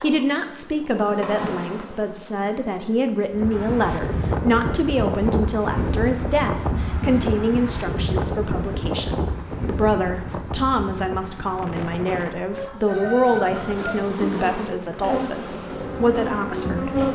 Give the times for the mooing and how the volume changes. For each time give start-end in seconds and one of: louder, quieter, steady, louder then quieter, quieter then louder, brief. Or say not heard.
not heard.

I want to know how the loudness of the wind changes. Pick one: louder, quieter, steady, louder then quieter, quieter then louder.
quieter.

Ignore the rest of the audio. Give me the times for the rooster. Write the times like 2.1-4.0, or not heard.
12.5-14.1.